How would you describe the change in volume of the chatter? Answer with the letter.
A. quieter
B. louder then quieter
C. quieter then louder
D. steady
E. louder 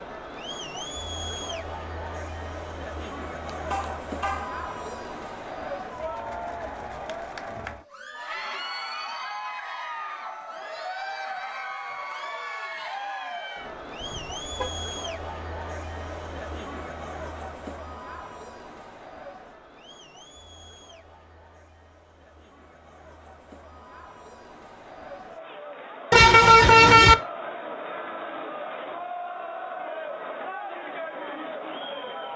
C.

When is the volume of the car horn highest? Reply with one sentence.
The volume of the car horn peaks at 27 seconds.